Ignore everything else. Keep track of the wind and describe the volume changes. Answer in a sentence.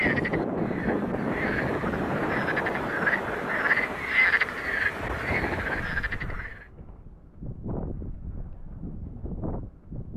The volume of the wind goes down.